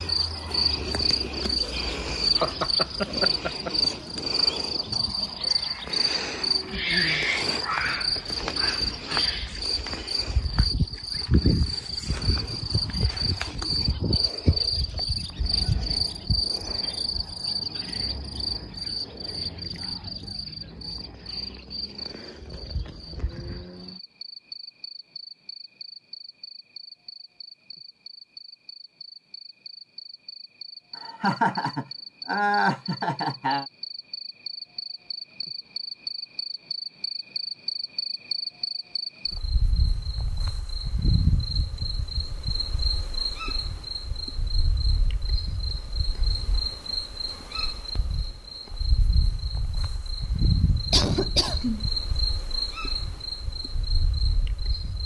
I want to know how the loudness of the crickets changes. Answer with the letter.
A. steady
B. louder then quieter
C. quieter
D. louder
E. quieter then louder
E.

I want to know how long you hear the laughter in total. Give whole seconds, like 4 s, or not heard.
5 s.